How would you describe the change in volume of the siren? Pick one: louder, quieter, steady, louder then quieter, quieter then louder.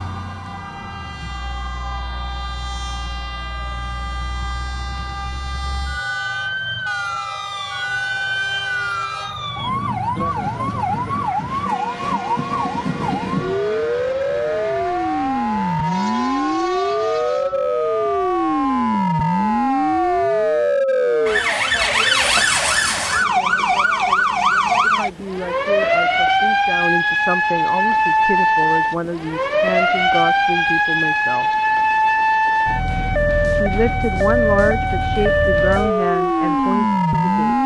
louder.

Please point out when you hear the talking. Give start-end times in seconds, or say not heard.
24.8-31.4, 33.5-37.6.